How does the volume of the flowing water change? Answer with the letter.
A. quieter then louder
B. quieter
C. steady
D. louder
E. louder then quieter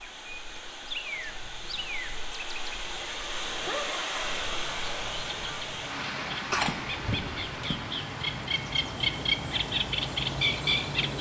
E.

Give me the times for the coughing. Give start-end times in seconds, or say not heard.
6.5-7.8.